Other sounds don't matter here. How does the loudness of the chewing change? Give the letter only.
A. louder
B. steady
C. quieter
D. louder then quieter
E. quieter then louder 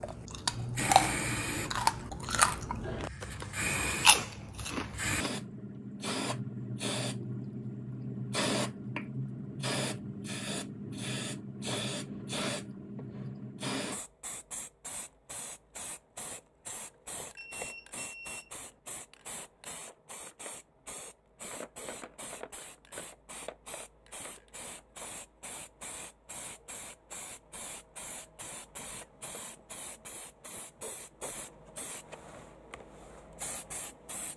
E.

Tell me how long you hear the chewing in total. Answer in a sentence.
The chewing can be heard for 5 seconds in total.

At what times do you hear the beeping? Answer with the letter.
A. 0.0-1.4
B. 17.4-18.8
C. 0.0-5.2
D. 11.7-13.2
B.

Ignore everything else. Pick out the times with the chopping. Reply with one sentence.
The chopping can't be heard in this clip.